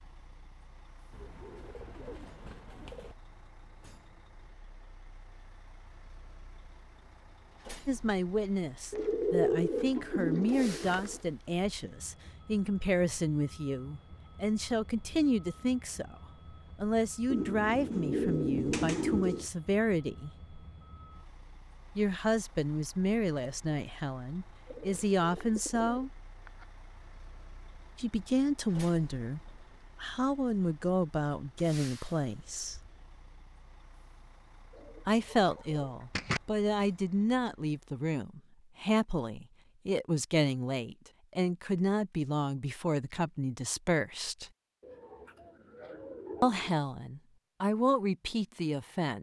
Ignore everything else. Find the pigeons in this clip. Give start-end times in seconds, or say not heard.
1.1-3.1, 8.9-11.2, 17.3-19.4, 24.6-26.6, 34.8-36.4, 44.8-46.7.